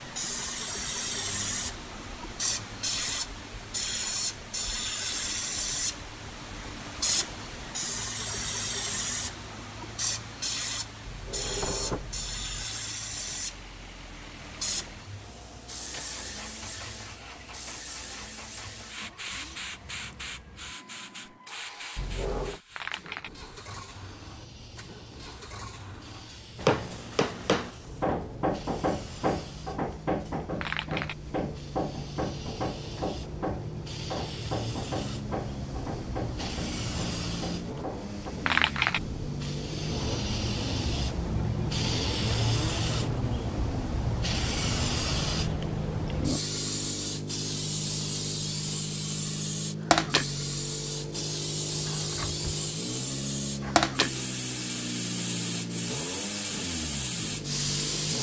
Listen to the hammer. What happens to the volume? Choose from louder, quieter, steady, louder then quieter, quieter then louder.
quieter.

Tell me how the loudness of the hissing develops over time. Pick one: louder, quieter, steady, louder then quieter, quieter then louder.
quieter then louder.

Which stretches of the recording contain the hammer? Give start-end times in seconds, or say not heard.
26.6-38.4.